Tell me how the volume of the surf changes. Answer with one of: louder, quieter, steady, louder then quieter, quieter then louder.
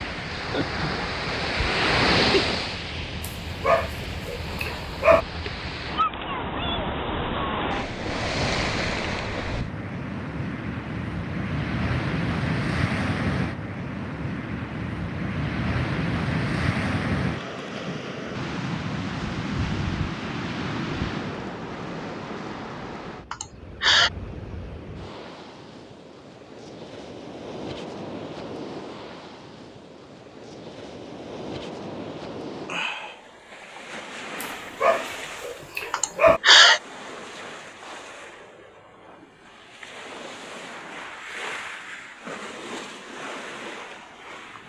quieter.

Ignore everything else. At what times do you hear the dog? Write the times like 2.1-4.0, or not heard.
3.2-5.2, 34.4-36.4.